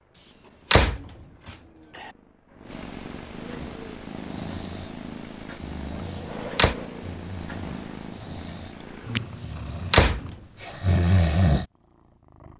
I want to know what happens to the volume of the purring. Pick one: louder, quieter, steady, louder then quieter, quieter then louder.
louder then quieter.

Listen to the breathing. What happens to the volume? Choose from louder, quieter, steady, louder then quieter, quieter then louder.
louder.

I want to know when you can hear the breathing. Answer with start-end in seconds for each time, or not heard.
3.5-11.7.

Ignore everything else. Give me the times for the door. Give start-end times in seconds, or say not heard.
0.2-2.1, 6.0-6.8, 9.4-10.3.